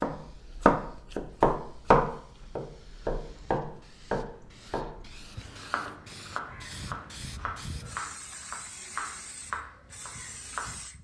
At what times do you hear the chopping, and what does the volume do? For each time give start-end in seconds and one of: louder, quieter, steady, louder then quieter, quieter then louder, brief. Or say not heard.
0.0-10.8 quieter.